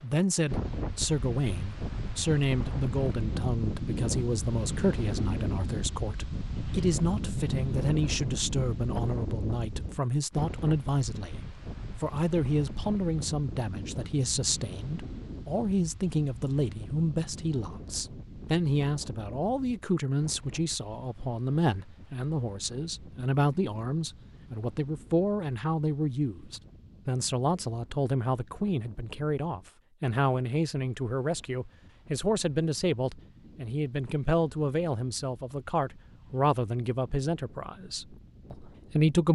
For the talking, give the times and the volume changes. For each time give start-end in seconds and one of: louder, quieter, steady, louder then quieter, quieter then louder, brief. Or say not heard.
0.0-39.3 steady.